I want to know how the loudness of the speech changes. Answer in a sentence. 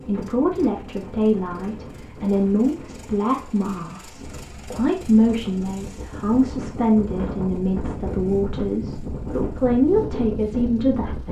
The loudness of the speech stays about the same.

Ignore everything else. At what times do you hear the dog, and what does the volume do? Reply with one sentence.
The dog can't be heard in this clip.